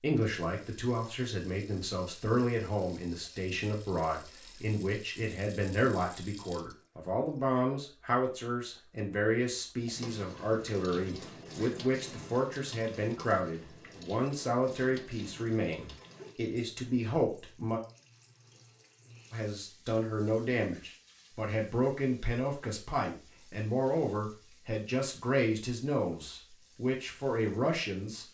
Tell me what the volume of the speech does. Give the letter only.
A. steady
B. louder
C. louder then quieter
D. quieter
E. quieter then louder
A.